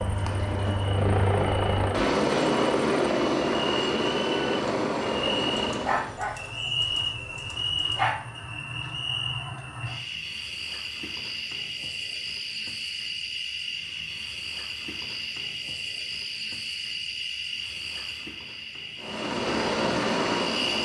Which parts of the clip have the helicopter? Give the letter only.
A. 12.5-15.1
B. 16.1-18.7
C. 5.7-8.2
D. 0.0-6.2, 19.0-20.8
D.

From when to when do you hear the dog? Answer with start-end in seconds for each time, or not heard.
5.7-8.2.